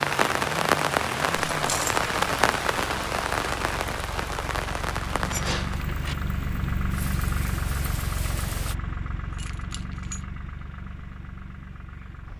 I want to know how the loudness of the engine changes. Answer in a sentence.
The loudness of the engine goes up, then down.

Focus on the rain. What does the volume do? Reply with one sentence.
The loudness of the rain goes down.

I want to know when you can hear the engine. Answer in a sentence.
You can hear the engine from 0.0 to 12.3 s.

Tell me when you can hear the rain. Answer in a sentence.
The rain can be heard from 0.0 to 8.8 s.